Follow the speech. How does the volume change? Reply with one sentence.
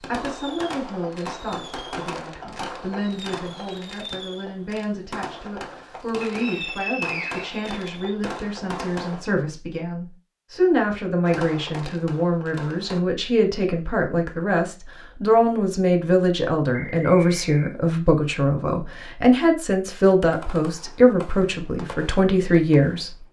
The loudness of the speech goes up.